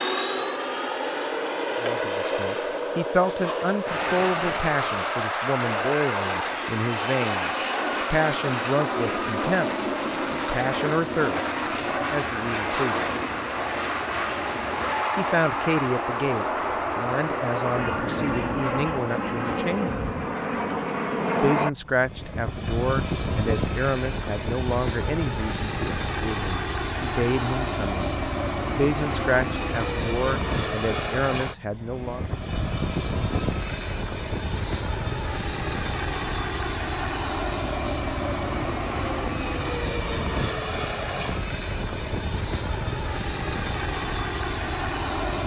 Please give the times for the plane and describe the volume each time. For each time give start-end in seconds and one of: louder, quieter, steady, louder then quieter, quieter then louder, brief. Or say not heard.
0.0-45.4 steady.